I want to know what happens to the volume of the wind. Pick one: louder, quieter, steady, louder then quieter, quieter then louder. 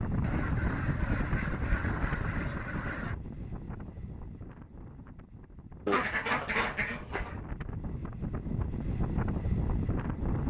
quieter then louder.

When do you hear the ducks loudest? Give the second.
6 s.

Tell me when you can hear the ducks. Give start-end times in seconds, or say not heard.
0.2-3.1, 5.8-7.4.